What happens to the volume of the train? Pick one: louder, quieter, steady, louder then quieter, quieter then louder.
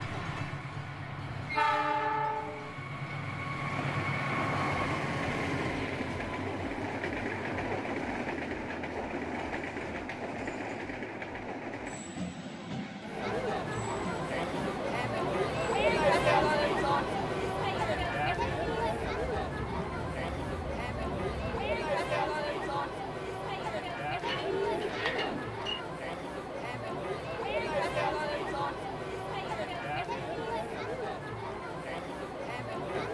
quieter.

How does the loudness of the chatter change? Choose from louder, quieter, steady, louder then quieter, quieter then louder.
quieter.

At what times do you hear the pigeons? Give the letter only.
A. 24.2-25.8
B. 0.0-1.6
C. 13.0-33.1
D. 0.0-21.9
A.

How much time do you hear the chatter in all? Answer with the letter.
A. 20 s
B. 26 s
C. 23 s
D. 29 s
A.